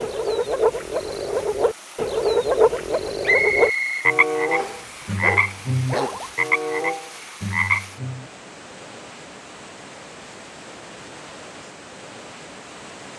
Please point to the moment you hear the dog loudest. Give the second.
6 s.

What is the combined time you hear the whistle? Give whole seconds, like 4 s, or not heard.
2 s.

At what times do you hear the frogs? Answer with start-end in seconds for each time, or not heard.
0.0-8.2.